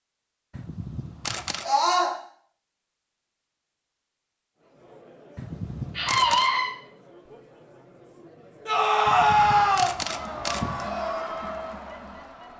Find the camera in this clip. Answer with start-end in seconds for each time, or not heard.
0.5-1.7, 5.3-6.5, 9.1-10.9.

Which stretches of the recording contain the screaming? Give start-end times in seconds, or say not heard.
1.6-2.1, 6.0-6.7, 8.7-9.9.